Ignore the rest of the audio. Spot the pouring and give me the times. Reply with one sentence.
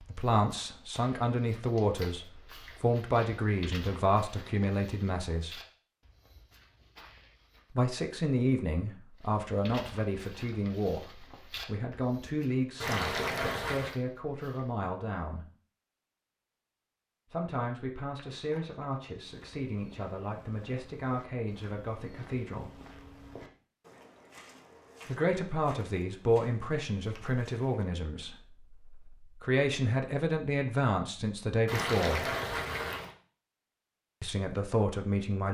The pouring can be heard from 12.8 to 13.9 s and from 31.6 to 33.1 s.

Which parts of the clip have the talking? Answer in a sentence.
You can hear the talking from 0.0 to 5.6 s, from 7.8 to 15.4 s, from 17.3 to 22.8 s, from 25.1 to 32.2 s and from 34.2 to 35.4 s.